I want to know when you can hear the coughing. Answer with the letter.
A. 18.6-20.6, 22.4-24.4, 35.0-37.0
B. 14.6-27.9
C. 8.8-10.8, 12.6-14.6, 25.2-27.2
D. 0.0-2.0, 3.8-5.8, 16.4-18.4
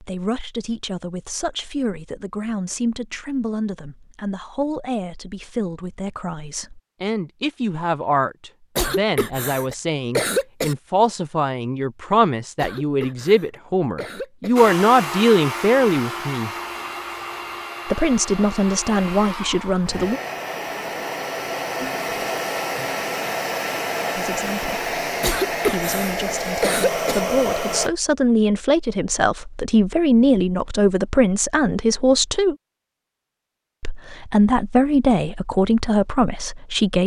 C.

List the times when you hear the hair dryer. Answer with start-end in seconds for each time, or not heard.
14.6-27.9.